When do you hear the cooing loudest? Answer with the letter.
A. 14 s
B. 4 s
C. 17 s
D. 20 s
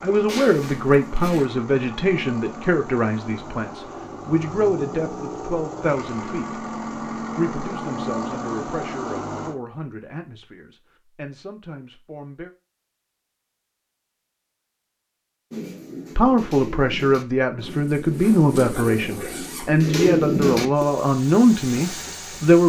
D.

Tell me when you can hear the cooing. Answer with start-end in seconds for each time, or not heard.
15.5-20.9.